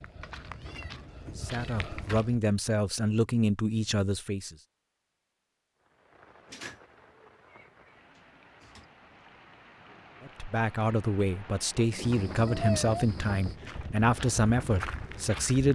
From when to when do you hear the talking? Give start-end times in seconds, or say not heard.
1.3-4.5, 10.2-15.6.